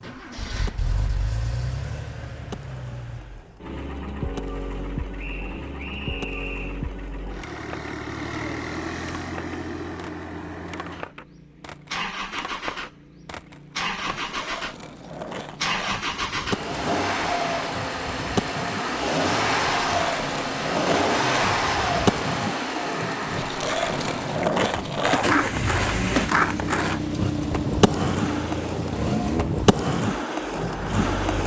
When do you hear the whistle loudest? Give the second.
6 s.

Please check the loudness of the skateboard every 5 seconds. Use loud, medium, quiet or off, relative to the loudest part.
quiet, quiet, quiet, medium, loud, loud, loud.